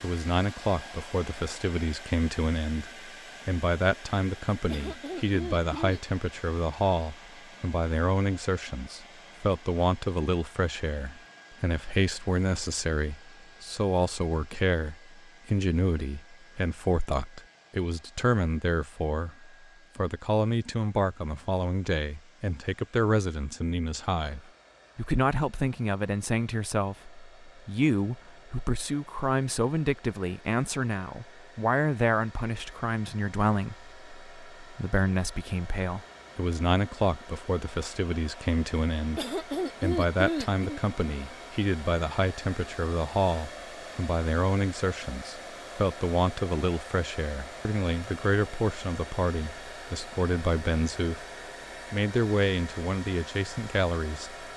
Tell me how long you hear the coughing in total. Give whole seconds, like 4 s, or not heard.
3 s.